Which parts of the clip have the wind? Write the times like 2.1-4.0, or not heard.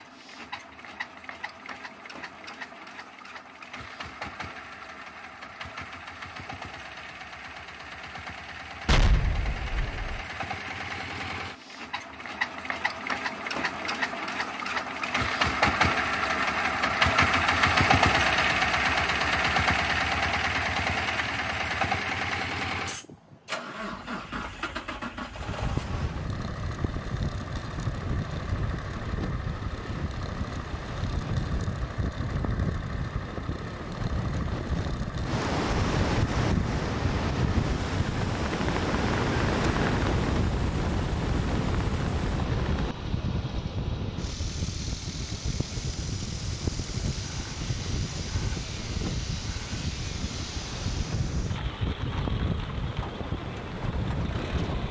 25.4-54.8.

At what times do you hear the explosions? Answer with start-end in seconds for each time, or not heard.
8.8-10.2.